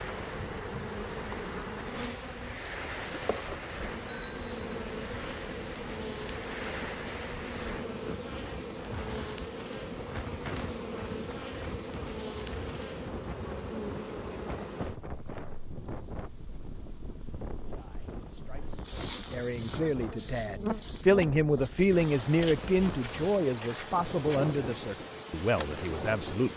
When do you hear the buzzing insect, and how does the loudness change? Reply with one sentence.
The buzzing insect can be heard from 0.0 to 26.5 s, at a steady volume.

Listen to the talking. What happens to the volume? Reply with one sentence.
The volume of the talking goes up, then down.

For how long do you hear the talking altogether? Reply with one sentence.
The talking can be heard for 9 seconds in total.